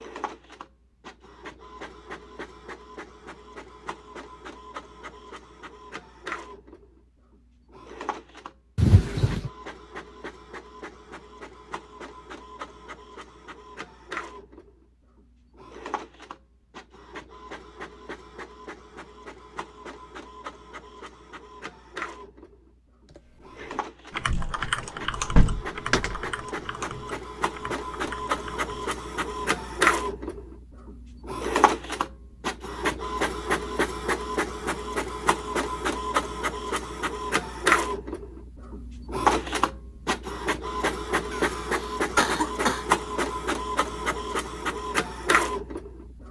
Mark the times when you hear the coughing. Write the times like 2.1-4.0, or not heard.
41.3-42.9.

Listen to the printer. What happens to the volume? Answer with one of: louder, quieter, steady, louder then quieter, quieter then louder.
louder.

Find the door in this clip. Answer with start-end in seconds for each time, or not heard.
8.8-9.5, 24.2-26.2.